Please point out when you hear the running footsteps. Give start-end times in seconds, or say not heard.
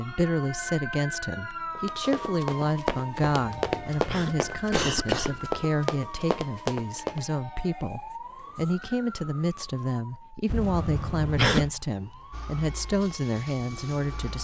1.8-7.2.